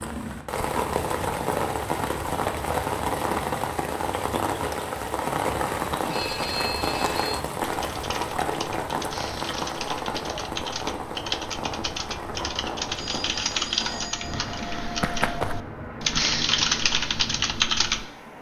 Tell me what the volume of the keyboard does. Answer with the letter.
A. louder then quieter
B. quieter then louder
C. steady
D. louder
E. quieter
D.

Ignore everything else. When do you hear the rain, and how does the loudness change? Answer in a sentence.
The rain can be heard from 0.0 to 18.3 s, getting quieter.